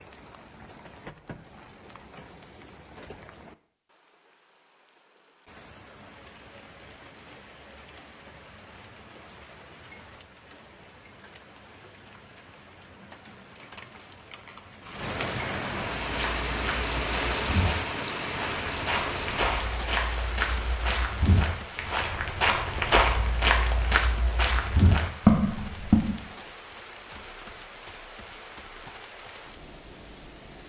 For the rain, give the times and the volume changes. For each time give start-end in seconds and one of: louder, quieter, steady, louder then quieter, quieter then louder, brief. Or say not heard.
0.0-30.6 louder then quieter.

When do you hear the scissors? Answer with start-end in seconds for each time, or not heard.
13.6-15.1.